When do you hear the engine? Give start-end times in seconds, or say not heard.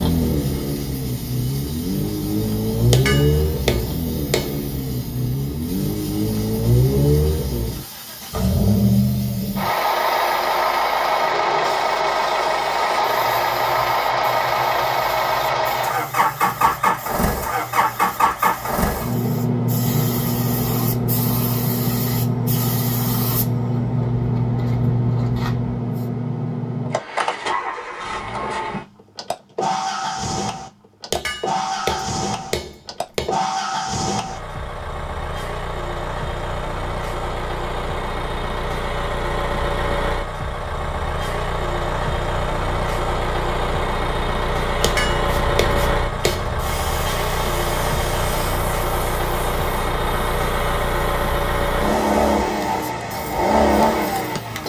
0.0-54.6.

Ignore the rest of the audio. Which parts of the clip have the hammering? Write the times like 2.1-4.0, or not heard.
2.9-4.7, 31.1-33.4, 44.8-46.5.